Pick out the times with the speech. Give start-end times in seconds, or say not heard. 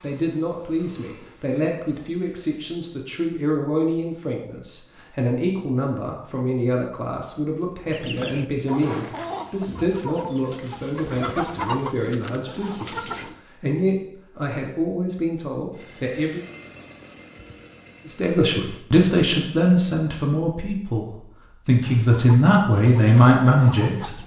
0.0-16.4, 18.1-24.1.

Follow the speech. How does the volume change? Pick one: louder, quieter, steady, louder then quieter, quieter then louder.
louder.